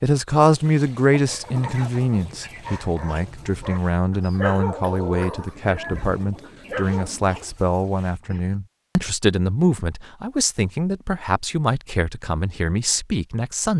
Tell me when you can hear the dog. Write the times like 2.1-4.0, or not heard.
1.2-7.2.